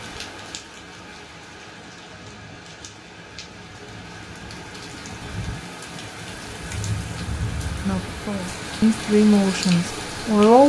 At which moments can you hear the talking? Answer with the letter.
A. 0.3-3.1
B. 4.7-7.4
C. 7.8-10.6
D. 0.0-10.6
C.